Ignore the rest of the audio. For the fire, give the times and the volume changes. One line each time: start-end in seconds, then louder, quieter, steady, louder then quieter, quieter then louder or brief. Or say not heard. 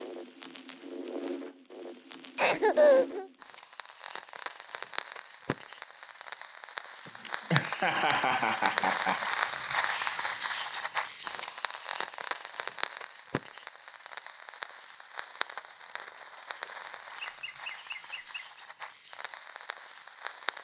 0.0-20.6 louder then quieter.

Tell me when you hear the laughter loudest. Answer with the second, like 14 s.
3 s.